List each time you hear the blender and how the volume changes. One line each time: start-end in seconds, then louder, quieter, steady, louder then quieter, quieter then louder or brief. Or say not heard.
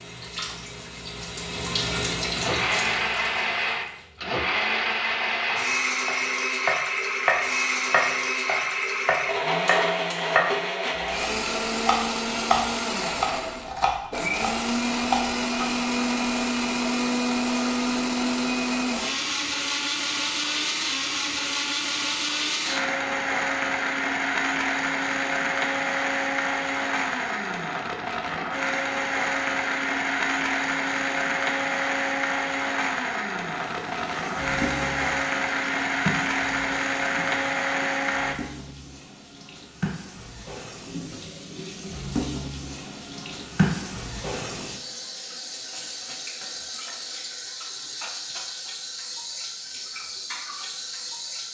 2.3-38.4 steady.